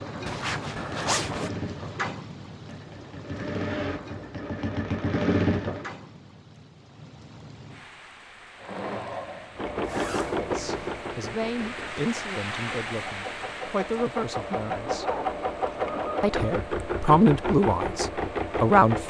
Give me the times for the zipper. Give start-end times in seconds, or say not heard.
0.2-1.5, 9.8-11.0, 14.8-16.1.